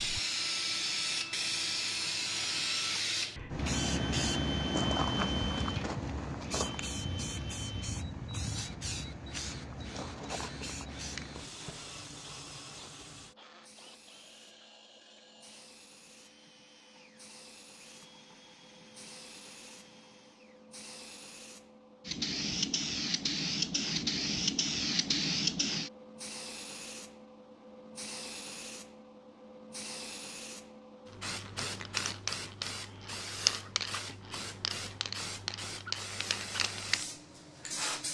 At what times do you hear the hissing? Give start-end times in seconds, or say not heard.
0.0-38.0.